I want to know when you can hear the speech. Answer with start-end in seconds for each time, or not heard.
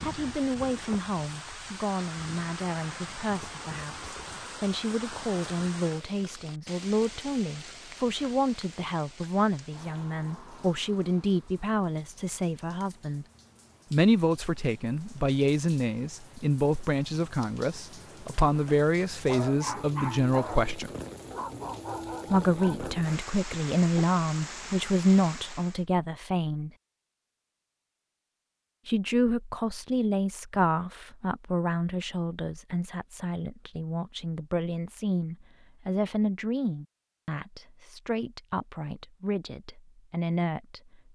0.0-13.2, 13.9-20.9, 22.3-26.7, 28.9-41.1.